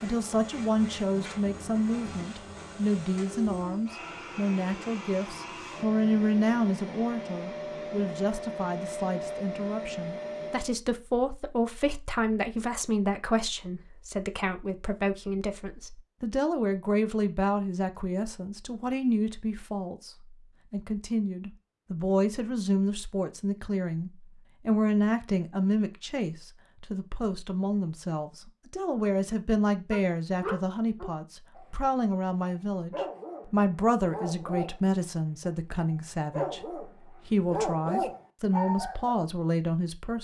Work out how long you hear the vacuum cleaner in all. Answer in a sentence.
The vacuum cleaner can be heard for 11 seconds in total.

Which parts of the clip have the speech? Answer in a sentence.
You can hear the speech from 0.0 to 20.1 s and from 20.7 to 40.1 s.